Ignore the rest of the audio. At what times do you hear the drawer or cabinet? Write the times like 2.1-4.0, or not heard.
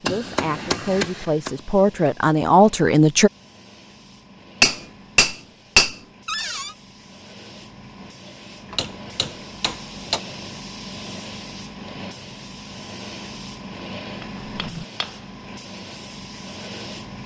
6.2-6.8, 14.4-14.8.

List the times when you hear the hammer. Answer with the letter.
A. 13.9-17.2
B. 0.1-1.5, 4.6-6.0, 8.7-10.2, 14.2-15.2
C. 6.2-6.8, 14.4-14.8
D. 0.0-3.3
B.